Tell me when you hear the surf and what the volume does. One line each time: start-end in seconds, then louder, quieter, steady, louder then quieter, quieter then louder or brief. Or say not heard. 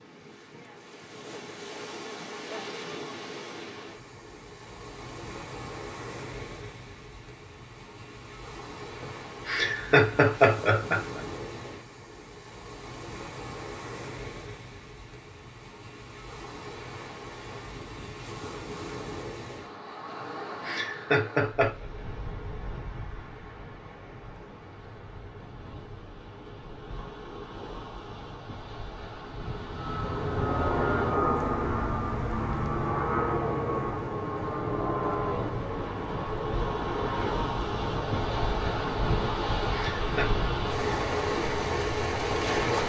0.0-42.8 louder.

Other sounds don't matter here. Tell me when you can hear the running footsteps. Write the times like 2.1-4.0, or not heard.
not heard.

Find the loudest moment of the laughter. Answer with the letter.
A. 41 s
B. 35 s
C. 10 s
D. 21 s
C.